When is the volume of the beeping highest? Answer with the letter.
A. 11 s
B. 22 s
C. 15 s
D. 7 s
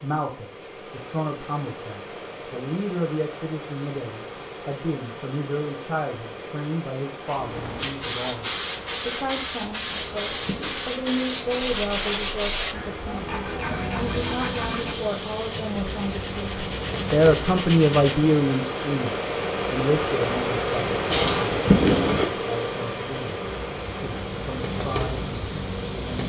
B.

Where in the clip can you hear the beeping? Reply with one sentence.
The beeping can be heard from 9.8 to 10.8 s and from 21.1 to 22.3 s.